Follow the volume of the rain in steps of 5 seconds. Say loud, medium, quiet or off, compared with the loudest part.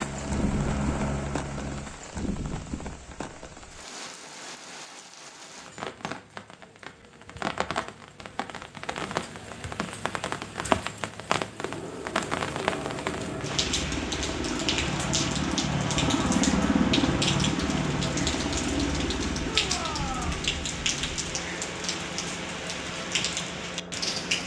medium, medium, loud, loud, loud.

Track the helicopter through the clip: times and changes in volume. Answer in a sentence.
You can hear the helicopter briefly from 0.0 to 1.9 s; and from 11.5 to 24.4 s, getting louder then quieter.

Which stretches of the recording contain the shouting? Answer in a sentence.
You can hear the shouting from 19.4 to 20.4 s.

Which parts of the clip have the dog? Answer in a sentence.
The dog can't be heard in this clip.